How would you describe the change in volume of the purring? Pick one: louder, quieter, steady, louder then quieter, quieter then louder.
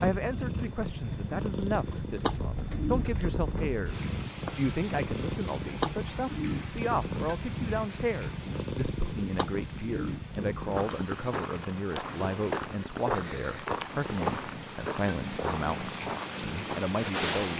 quieter.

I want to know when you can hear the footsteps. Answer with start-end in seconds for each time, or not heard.
10.7-16.9.